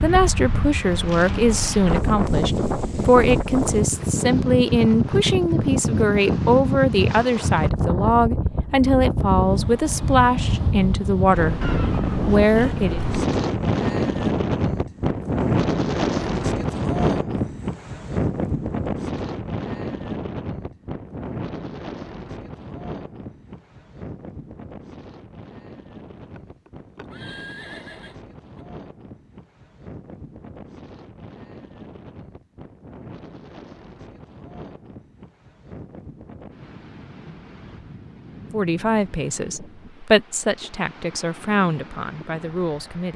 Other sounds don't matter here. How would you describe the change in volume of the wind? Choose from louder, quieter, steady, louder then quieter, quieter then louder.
quieter.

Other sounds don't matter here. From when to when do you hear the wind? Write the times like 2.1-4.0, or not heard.
0.0-43.1.